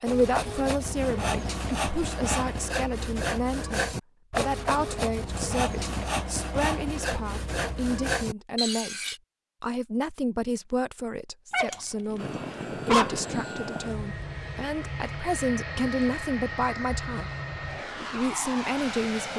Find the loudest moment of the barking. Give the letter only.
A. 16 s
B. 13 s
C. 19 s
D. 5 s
B.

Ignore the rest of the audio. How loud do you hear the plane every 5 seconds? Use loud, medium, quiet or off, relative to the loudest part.
off, off, loud, loud.